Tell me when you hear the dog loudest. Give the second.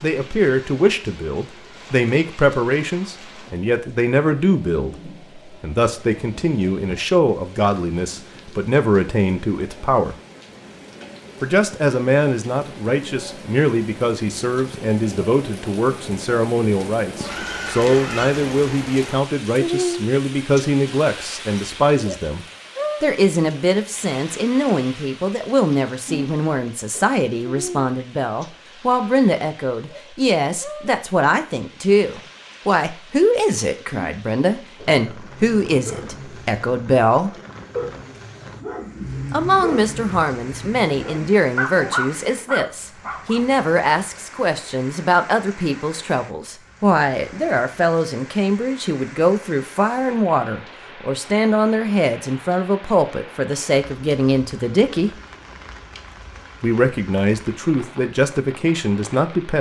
42 s.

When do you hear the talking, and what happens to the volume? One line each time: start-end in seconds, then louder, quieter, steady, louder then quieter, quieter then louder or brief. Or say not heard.
0.0-10.2 steady
11.4-37.3 steady
39.3-55.1 steady
56.6-59.5 brief.